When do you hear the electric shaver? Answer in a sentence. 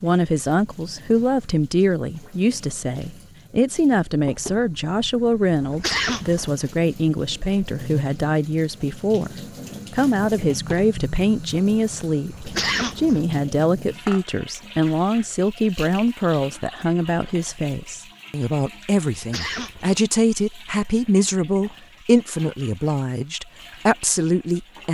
You can't hear the electric shaver here.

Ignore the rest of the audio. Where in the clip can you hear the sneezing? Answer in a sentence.
The sneezing can be heard from 5.6 to 6.5 s, from 12.3 to 13.2 s and from 19.1 to 20.0 s.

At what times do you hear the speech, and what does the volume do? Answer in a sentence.
You can hear the speech from 0.0 to 24.9 s, at a steady volume.